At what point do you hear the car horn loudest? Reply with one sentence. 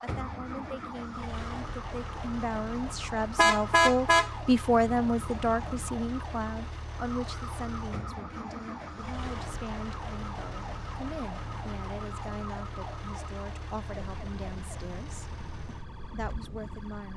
The loudest moment of the car horn is at 4 seconds.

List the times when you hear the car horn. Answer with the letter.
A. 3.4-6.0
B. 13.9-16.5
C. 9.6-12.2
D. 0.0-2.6
A.